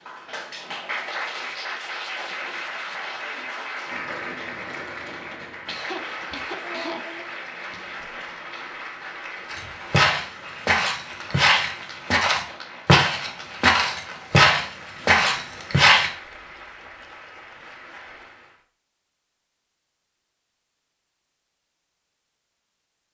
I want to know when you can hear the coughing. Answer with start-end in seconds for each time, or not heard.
5.7-7.2.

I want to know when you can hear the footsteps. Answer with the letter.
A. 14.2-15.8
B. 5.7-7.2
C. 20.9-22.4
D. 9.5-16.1
D.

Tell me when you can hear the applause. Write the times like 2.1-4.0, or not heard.
0.0-18.6.